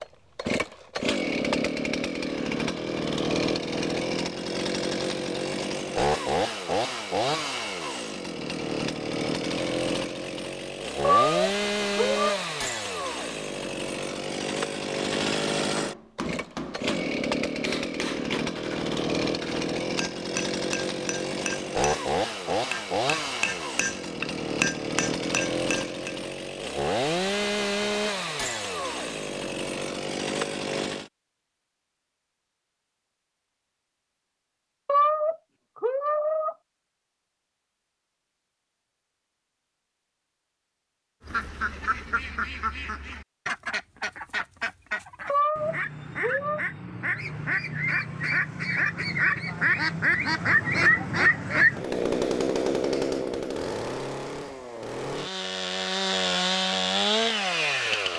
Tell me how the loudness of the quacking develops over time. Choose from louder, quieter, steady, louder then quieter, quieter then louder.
louder.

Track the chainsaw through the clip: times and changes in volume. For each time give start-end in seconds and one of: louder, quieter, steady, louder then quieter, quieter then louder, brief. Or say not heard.
0.0-31.1 steady
51.7-58.1 quieter then louder.